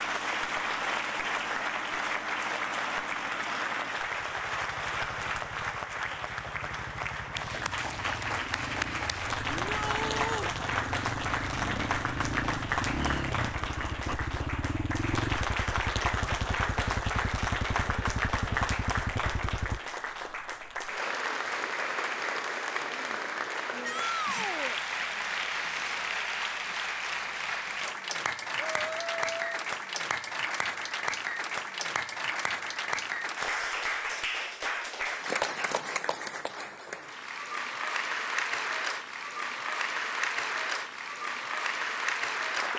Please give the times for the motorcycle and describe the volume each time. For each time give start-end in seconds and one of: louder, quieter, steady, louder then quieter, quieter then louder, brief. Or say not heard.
0.0-19.8 louder.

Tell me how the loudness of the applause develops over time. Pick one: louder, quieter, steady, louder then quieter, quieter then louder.
steady.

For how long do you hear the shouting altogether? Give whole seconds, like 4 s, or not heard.
3 s.